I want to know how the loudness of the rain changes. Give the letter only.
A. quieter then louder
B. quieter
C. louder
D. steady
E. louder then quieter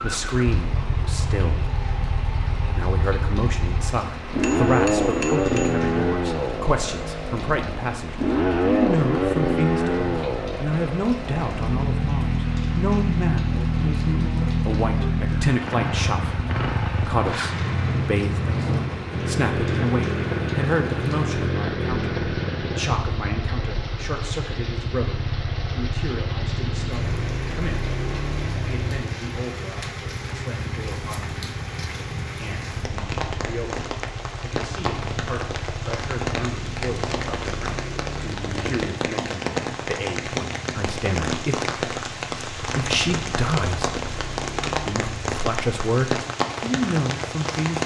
C.